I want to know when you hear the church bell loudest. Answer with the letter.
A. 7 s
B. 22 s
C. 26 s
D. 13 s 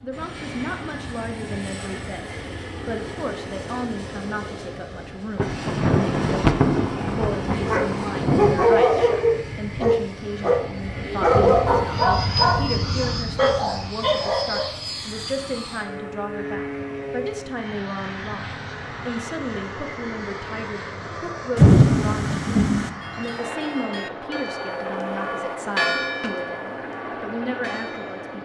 C.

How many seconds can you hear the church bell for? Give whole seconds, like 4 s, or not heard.
5 s.